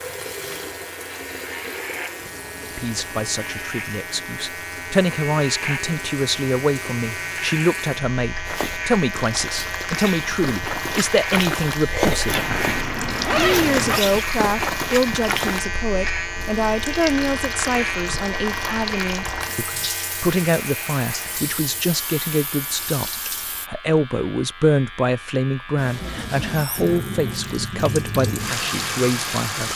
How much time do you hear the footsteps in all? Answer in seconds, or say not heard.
7 s.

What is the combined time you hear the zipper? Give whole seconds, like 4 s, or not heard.
2 s.